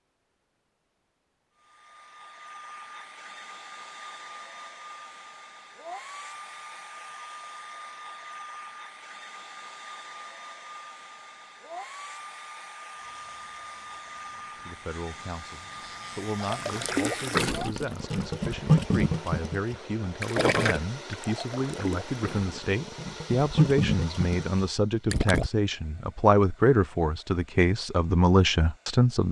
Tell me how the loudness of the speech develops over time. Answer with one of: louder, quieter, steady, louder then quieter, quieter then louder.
louder.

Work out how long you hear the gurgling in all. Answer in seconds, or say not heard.
9 s.